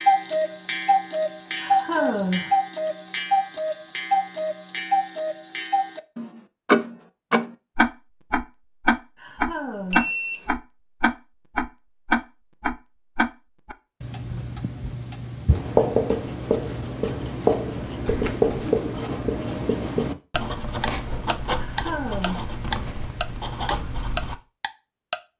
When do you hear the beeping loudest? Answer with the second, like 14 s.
10 s.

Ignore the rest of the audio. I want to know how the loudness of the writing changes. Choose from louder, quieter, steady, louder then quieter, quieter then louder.
quieter.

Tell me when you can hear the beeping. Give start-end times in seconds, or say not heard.
9.9-10.6, 18.1-18.6.